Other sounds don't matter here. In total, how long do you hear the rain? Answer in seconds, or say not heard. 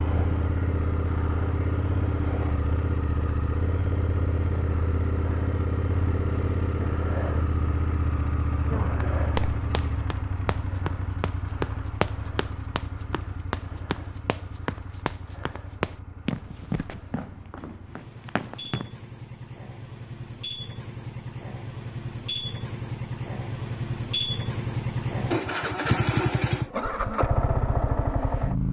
not heard.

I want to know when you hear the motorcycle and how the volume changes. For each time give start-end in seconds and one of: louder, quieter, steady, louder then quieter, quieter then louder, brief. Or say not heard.
0.0-28.6 quieter then louder.